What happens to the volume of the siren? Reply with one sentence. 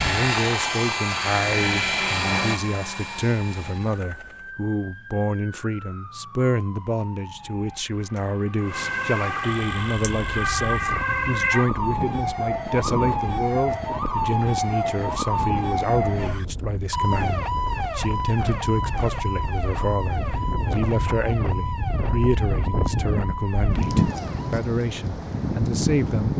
The loudness of the siren goes up, then down.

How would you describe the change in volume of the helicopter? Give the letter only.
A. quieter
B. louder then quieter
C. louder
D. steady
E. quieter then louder
A.